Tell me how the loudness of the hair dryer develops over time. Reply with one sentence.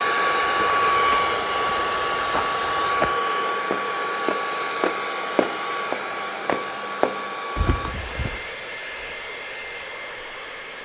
The loudness of the hair dryer goes down.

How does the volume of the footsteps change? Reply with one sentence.
The volume of the footsteps goes up.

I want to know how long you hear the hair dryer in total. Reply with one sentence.
You can hear the hair dryer for 11 seconds altogether.